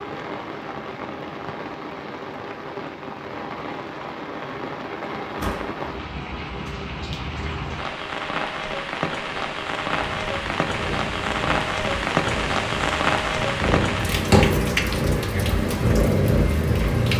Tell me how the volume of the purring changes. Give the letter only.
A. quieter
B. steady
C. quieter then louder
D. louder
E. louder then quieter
D.